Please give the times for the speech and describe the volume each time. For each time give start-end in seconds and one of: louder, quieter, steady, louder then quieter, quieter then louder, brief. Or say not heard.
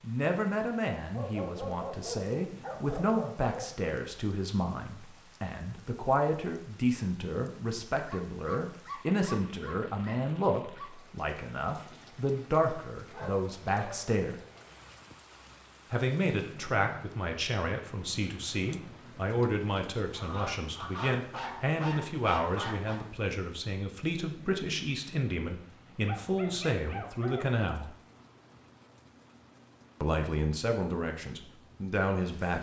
0.0-14.3 steady
15.9-27.9 steady
30.0-32.5 brief.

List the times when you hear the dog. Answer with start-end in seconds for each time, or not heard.
1.1-3.9, 8.0-10.9, 13.1-14.1, 20.1-23.0, 26.1-27.6.